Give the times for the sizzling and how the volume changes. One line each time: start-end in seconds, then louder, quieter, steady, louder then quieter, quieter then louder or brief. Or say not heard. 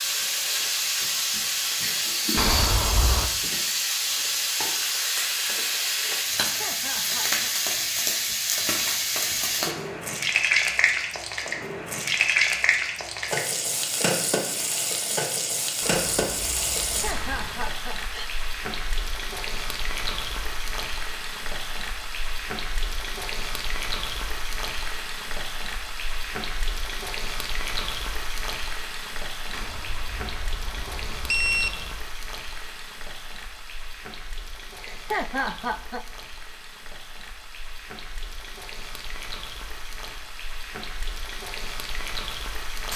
0.0-42.9 quieter.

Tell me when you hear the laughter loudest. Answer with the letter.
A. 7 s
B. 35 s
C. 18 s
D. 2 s
B.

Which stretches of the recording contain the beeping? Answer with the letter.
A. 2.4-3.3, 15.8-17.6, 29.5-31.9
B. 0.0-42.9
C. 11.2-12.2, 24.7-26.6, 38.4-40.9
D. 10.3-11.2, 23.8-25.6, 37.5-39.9
A.